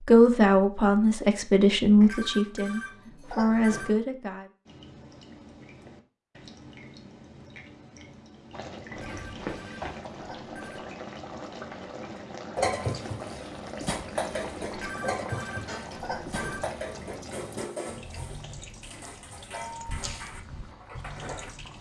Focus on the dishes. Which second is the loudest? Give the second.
13 s.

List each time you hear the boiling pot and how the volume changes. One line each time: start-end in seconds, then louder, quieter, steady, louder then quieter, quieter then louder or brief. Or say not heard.
8.5-21.7 quieter.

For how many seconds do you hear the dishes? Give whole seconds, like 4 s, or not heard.
9 s.